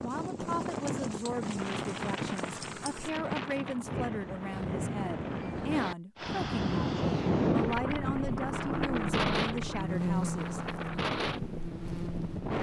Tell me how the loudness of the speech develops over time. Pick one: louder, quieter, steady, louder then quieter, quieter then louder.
steady.